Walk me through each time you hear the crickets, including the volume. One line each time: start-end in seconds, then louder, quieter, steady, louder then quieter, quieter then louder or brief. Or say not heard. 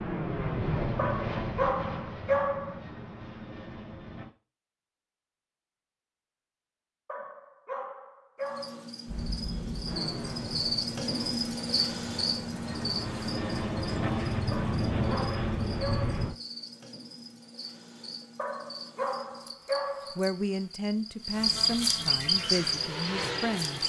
8.4-23.8 quieter then louder.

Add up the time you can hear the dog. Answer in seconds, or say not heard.
7 s.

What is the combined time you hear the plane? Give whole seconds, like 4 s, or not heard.
13 s.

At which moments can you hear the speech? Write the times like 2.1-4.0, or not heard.
20.1-23.8.